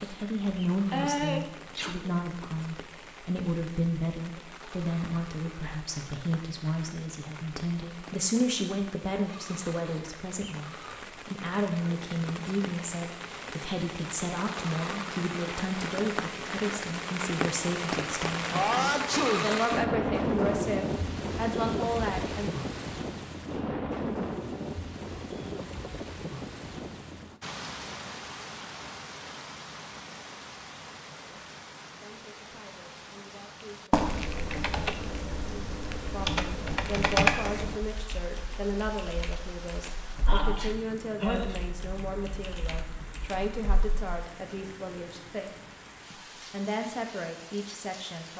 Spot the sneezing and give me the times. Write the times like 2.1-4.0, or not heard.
0.5-2.0, 18.5-19.5, 40.2-41.5.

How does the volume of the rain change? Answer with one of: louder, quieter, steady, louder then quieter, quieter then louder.
louder then quieter.